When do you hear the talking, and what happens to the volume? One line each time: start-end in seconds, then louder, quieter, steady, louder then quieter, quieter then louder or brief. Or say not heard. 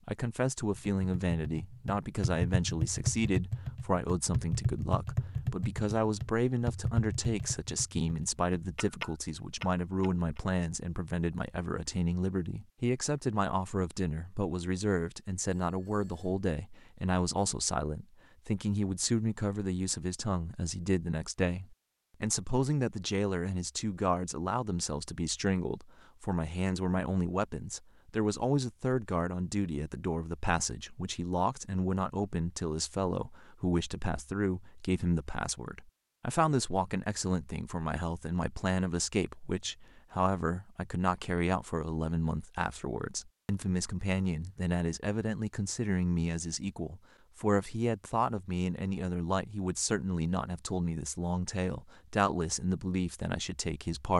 0.1-54.1 steady.